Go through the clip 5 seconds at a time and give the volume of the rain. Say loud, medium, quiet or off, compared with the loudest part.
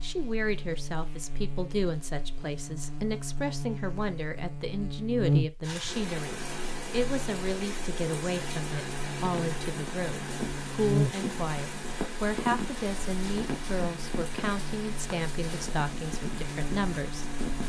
off, loud, loud, loud.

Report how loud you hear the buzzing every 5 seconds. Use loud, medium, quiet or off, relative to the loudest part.
medium, loud, loud, medium.